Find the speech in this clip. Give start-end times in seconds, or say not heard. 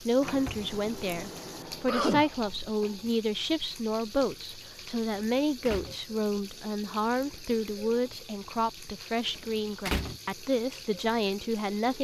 0.0-11.9.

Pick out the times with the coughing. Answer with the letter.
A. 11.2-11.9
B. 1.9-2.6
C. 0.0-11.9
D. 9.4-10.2
B.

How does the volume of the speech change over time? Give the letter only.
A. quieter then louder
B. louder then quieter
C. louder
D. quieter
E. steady
E.